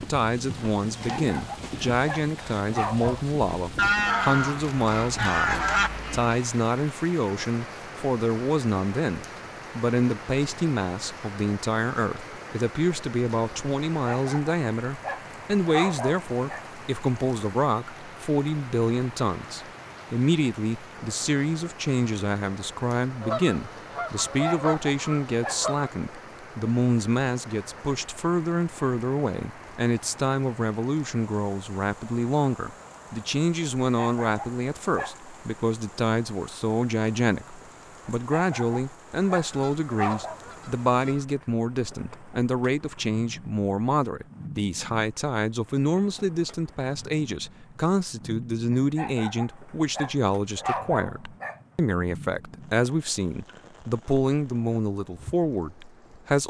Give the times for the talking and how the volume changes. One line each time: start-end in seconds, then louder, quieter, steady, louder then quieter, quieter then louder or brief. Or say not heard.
0.0-56.4 steady.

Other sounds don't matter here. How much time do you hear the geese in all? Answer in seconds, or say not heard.
7 s.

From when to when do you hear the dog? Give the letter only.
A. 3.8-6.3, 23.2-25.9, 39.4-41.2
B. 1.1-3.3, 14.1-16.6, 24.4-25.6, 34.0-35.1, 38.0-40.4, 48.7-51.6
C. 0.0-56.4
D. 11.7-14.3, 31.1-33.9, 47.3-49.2
B.